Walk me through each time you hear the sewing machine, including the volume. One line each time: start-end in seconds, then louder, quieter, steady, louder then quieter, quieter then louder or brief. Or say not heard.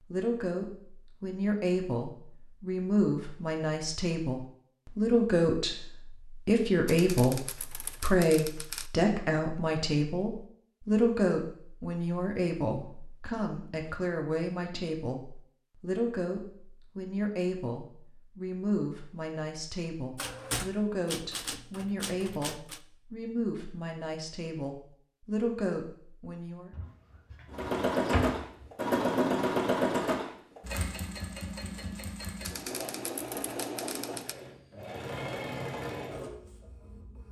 27.5-37.2 quieter.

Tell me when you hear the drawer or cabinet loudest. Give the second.
28 s.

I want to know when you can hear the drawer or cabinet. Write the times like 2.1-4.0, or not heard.
26.7-28.7.